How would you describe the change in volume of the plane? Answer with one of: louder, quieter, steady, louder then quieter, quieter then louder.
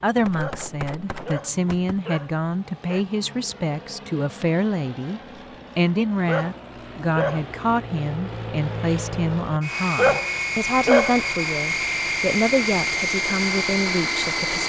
louder.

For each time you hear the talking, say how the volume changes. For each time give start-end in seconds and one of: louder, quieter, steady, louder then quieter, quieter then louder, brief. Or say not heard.
0.0-14.6 steady.